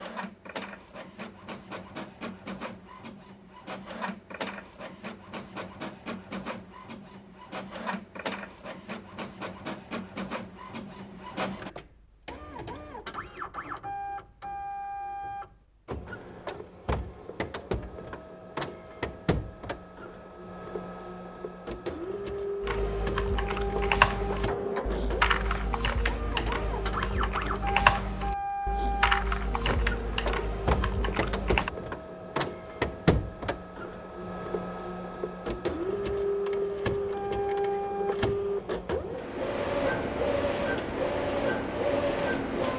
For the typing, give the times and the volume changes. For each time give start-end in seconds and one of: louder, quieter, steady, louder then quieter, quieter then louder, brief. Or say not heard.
22.6-31.7 quieter.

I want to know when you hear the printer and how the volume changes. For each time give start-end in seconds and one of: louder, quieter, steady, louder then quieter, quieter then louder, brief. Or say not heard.
0.0-42.7 louder.